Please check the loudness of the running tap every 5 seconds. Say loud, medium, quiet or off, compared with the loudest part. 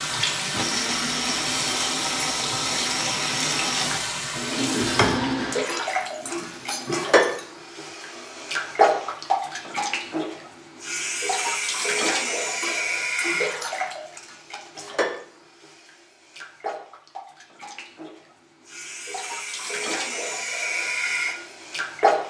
loud, loud, loud, medium, loud.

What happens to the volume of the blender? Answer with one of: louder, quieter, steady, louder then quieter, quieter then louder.
quieter.